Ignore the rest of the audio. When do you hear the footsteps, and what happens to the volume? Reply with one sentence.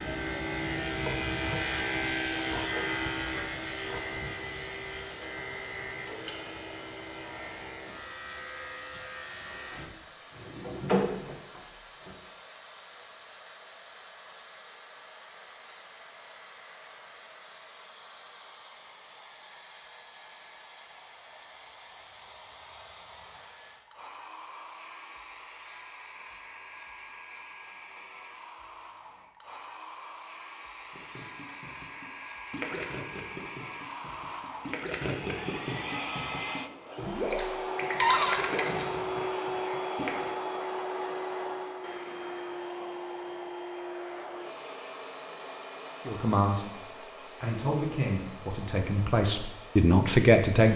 You can't hear the footsteps here.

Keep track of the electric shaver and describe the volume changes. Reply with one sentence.
The volume of the electric shaver goes down.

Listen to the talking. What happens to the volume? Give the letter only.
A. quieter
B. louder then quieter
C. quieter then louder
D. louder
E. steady
D.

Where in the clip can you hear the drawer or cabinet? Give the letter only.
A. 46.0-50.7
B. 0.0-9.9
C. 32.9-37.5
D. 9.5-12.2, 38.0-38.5
D.